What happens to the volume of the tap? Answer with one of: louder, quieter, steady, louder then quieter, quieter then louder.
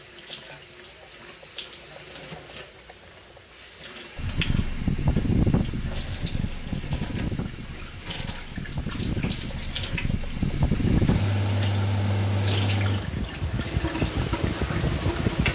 louder.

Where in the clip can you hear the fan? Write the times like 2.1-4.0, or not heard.
4.2-15.4.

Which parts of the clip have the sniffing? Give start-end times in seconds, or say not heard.
not heard.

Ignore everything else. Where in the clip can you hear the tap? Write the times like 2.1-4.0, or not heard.
0.0-15.4.